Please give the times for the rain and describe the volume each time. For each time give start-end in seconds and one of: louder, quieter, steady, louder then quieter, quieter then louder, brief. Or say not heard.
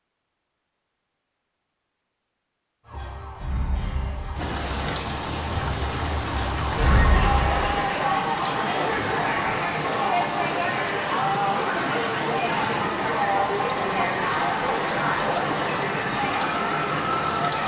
4.3-17.6 steady.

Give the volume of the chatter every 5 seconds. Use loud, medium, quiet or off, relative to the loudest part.
off, loud, loud, loud.